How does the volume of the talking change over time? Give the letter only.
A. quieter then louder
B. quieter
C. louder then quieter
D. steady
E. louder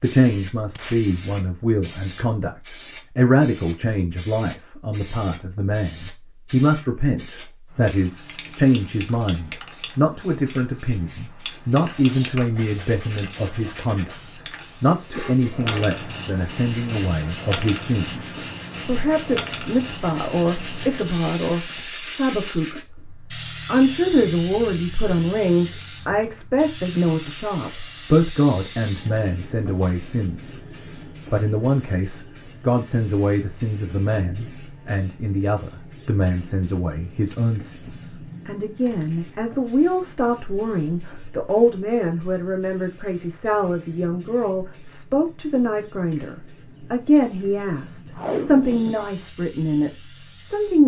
D.